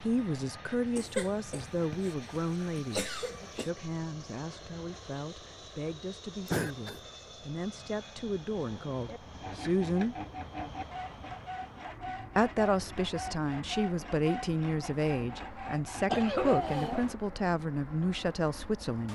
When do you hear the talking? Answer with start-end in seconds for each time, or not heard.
0.0-10.2, 12.3-19.0.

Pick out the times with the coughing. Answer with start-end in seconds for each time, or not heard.
0.9-3.7, 6.5-7.0, 16.1-17.1.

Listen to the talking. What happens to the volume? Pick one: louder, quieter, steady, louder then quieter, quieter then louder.
quieter then louder.